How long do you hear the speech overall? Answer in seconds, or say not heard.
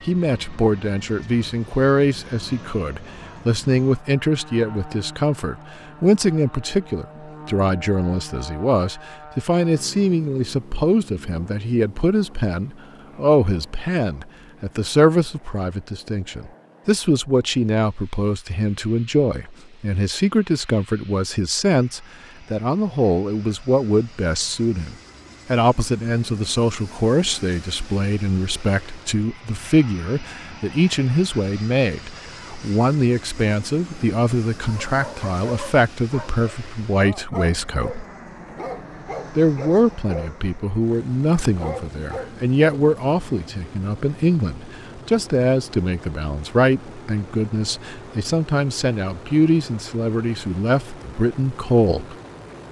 51 s.